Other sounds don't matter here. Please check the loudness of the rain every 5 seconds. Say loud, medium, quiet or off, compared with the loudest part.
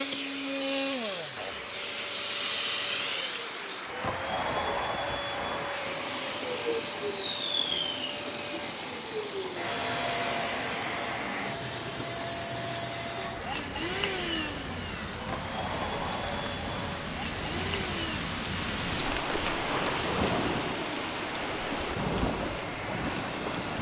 medium, medium, medium, loud, loud.